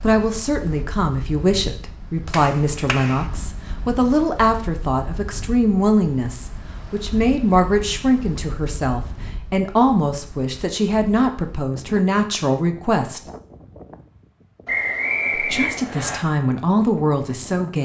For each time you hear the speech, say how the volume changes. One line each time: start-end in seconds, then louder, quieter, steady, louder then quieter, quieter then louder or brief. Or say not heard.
0.0-13.2 steady
15.3-17.8 brief.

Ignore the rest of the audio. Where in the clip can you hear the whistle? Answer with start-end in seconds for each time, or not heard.
14.7-16.2.